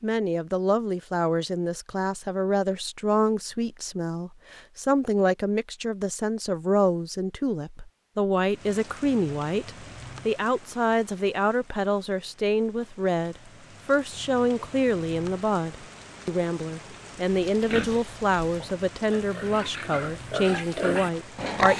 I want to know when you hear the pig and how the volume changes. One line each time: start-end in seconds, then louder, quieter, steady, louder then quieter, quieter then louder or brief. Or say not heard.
17.4-21.7 louder.